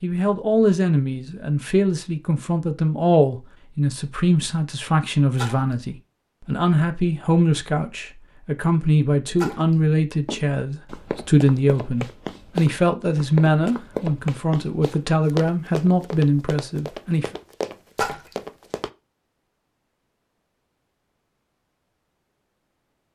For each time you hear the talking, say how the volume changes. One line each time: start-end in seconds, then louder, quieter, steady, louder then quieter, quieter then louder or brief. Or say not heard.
0.0-17.3 steady.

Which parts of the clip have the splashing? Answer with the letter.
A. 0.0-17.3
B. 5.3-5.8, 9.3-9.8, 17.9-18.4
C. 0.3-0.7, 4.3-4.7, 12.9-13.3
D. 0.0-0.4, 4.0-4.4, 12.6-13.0
B.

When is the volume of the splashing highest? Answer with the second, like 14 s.
18 s.